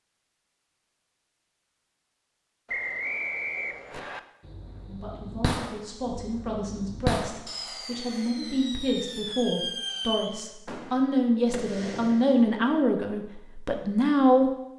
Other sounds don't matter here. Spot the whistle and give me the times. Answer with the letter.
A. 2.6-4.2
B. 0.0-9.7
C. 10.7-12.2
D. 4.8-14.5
A.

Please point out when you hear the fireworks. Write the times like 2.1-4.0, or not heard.
3.9-12.8.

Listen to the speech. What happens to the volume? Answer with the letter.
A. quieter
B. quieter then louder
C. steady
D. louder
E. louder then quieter
D.